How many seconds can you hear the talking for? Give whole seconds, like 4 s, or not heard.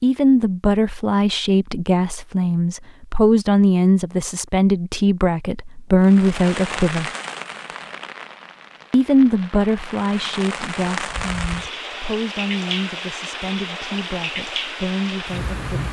14 s.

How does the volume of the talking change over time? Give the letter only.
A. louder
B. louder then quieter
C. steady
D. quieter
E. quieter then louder
D.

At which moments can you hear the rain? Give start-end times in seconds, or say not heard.
6.0-15.8.